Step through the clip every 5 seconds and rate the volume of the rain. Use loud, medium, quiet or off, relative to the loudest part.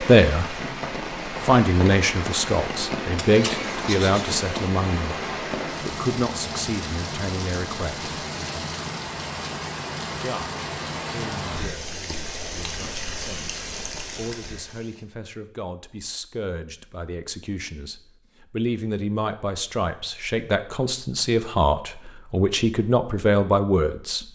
loud, loud, loud, off, off.